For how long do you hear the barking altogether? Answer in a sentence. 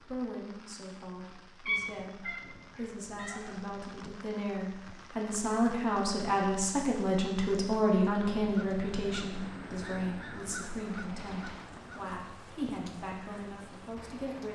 The barking can't be heard in this clip.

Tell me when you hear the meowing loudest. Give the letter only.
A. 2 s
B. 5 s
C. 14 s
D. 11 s
A.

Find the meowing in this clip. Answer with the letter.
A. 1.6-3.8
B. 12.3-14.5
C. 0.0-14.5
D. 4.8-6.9
A.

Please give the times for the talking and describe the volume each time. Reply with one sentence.
The talking can be heard from 0.0 to 14.5 s, getting louder then quieter.